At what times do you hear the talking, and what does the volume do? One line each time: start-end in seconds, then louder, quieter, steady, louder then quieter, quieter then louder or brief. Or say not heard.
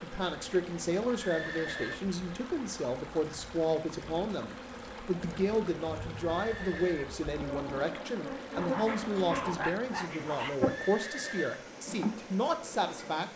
0.0-13.3 steady.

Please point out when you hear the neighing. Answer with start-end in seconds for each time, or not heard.
1.1-2.0, 6.3-7.2, 10.6-11.7.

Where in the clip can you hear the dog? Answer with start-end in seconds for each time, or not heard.
8.6-10.6.